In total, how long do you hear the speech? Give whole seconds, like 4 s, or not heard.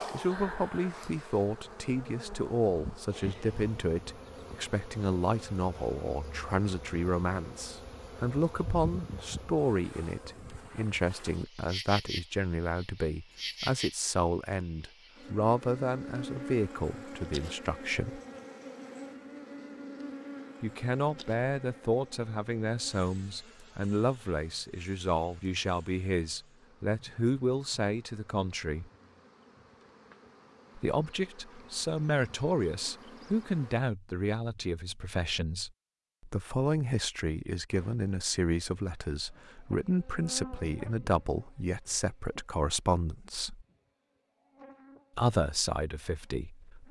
41 s.